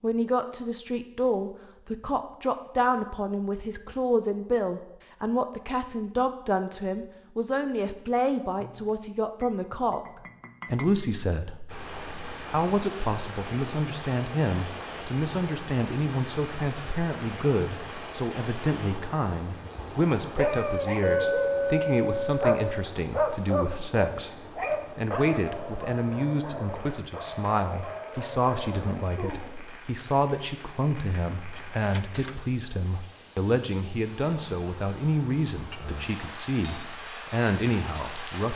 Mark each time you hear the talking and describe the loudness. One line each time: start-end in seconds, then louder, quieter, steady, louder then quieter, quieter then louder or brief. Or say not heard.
0.0-38.5 steady.